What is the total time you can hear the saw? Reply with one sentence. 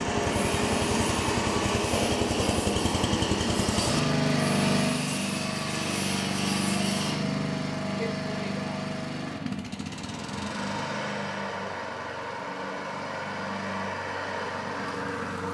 You can hear the saw for 7 seconds altogether.